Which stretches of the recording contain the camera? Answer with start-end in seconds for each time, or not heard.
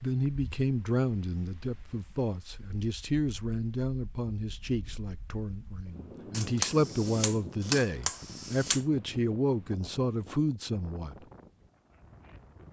6.3-8.8.